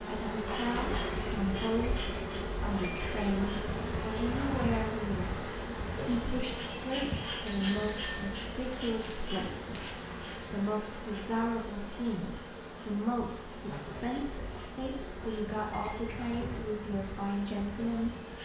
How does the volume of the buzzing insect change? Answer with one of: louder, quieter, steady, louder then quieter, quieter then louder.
quieter.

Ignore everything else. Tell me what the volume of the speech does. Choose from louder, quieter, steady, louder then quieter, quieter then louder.
steady.